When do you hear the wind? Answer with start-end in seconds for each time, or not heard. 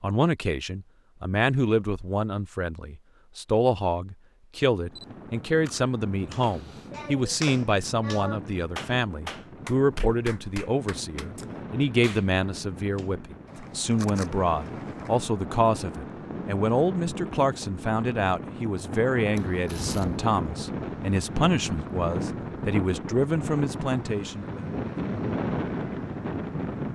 4.8-26.9.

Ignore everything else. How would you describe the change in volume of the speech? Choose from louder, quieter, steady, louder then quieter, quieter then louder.
steady.